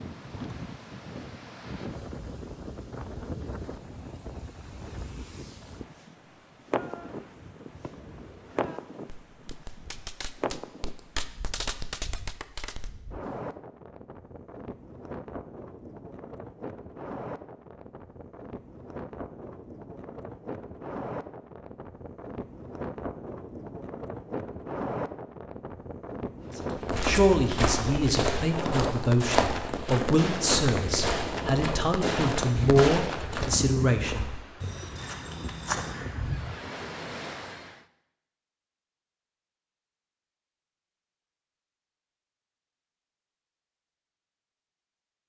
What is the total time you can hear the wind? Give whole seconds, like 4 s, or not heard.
38 s.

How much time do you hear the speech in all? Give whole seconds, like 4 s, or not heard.
8 s.